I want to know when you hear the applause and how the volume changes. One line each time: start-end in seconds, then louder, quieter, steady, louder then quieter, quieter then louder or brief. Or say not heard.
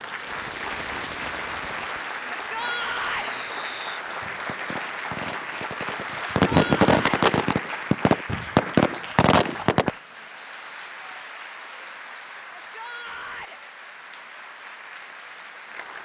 0.0-16.0 quieter.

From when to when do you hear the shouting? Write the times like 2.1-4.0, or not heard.
2.3-3.4, 6.5-7.2, 12.6-13.6.